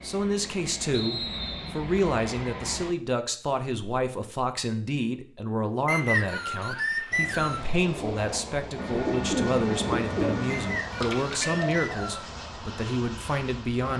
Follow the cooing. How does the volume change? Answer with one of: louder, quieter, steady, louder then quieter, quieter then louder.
louder then quieter.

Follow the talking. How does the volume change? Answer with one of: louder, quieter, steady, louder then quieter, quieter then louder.
steady.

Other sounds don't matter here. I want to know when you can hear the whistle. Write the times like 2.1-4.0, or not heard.
0.9-1.8, 5.8-7.7, 10.5-12.3.